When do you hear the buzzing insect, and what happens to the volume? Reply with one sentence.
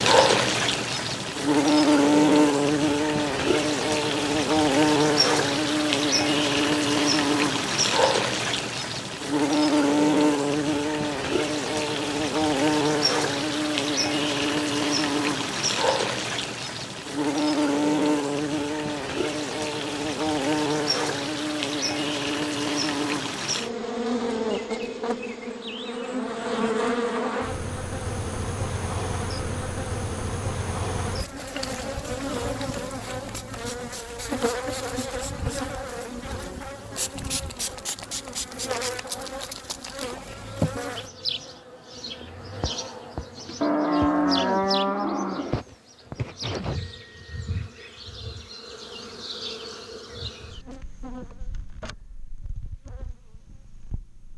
You can hear the buzzing insect from 0.0 to 54.3 s, getting quieter.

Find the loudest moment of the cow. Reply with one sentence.
The loudest moment of the cow is at 44 seconds.